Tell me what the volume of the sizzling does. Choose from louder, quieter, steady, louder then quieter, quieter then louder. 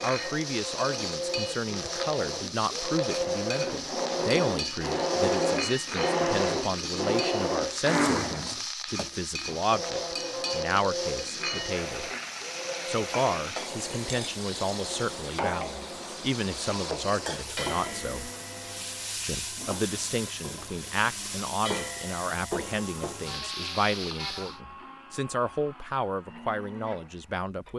steady.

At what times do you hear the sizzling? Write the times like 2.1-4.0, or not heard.
0.0-24.6.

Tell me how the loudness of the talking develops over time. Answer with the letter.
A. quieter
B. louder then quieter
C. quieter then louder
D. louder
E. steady
E.